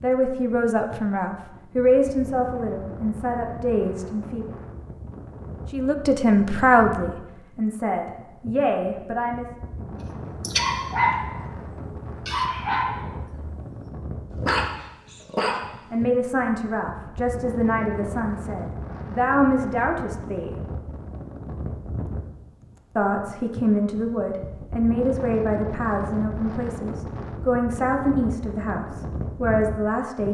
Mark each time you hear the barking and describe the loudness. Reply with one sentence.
You can hear the barking from 10.4 to 16.1 s, at a steady volume.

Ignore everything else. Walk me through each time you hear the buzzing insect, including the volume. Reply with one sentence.
The buzzing insect can't be heard in this clip.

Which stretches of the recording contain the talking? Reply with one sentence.
The talking can be heard from 0.0 to 4.5 s, from 5.7 to 9.4 s, from 15.9 to 20.6 s and from 22.9 to 30.2 s.